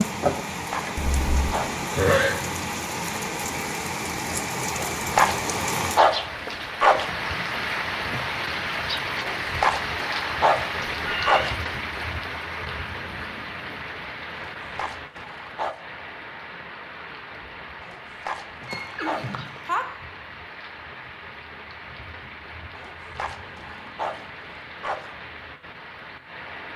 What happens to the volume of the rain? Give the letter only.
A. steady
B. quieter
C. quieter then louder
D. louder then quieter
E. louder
B.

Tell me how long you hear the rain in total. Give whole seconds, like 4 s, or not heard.
27 s.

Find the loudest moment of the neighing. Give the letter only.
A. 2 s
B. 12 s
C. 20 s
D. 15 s
A.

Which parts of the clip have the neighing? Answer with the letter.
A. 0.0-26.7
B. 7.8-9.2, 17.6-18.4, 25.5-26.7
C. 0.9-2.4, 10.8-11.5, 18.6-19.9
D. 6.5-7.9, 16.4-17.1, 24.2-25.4
C.